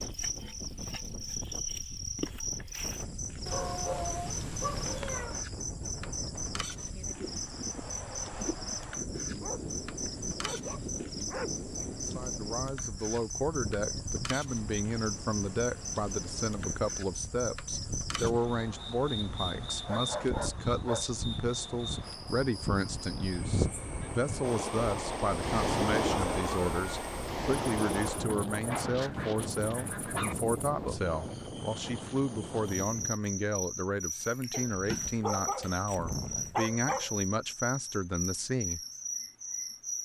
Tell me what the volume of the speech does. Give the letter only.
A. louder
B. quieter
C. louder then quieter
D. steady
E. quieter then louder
D.